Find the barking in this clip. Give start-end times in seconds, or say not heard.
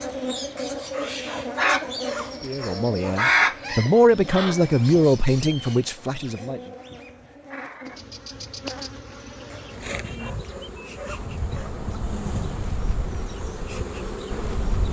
0.6-3.2, 9.5-11.8.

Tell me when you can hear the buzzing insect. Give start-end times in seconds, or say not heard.
0.0-14.8.